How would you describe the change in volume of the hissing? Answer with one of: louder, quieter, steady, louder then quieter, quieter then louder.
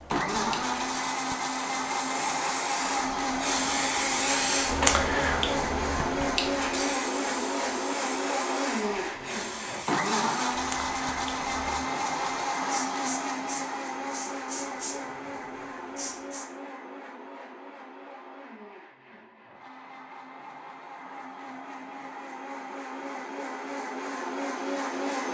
louder then quieter.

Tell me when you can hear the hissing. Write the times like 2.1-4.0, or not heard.
0.0-16.5.